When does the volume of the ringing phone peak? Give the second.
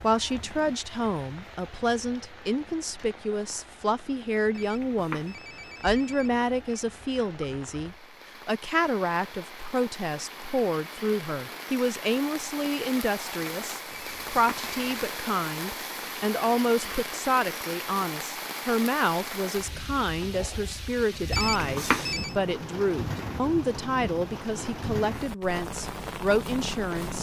22 s.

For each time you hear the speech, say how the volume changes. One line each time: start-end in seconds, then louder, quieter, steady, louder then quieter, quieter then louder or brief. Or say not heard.
0.0-27.1 steady.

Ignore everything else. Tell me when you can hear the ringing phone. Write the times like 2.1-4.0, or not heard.
4.5-6.8, 13.9-15.1, 21.3-22.4.